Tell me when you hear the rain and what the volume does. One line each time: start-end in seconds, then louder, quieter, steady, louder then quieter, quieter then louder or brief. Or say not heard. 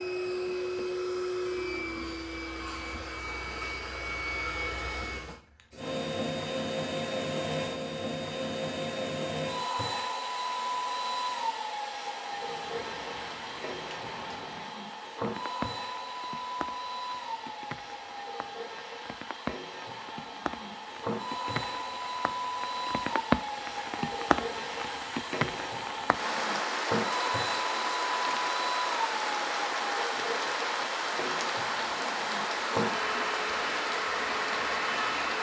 12.2-35.3 louder.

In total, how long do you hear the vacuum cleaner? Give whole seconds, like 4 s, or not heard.
35 s.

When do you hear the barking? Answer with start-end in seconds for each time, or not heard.
not heard.